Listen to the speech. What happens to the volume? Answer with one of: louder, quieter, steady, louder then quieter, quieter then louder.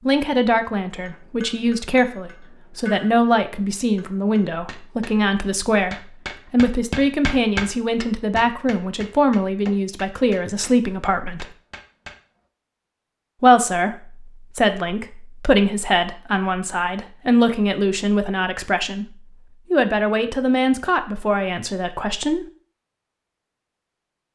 steady.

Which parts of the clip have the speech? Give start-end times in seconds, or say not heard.
0.1-11.4, 13.4-22.4.